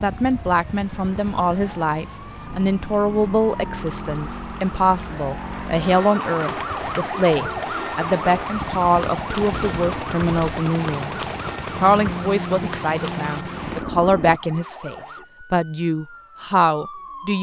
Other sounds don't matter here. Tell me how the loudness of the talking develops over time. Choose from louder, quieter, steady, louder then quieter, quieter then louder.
steady.